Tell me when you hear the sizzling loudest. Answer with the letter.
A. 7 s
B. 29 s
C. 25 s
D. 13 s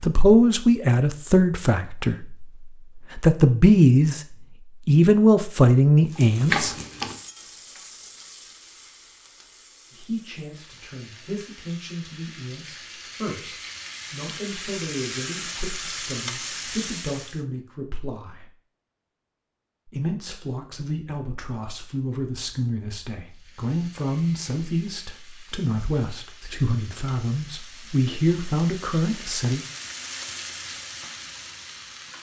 A.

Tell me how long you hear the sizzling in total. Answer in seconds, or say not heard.
20 s.